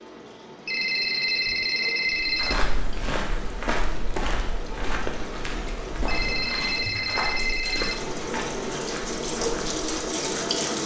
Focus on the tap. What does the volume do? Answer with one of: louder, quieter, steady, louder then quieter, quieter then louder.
louder.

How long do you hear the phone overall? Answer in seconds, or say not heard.
4 s.